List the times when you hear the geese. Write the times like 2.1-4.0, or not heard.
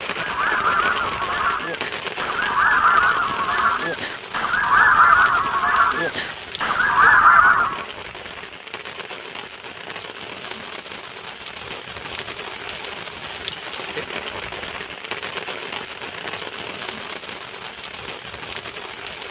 0.1-7.8.